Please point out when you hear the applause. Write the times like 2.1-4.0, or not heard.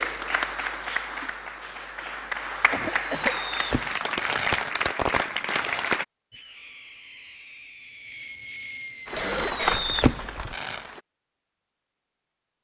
0.0-6.0, 9.1-11.0.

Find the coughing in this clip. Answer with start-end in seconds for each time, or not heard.
2.7-3.4, 9.1-10.6.